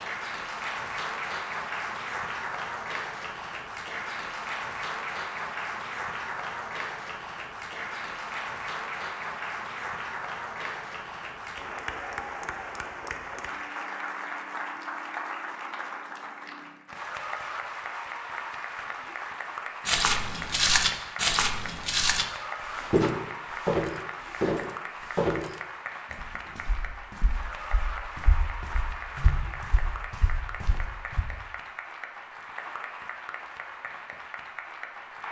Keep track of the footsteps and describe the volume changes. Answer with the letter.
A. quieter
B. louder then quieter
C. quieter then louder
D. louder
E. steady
C.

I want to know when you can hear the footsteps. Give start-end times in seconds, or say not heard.
19.9-31.2.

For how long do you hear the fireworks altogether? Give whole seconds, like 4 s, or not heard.
not heard.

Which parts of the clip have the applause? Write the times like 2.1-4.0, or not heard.
0.0-35.2.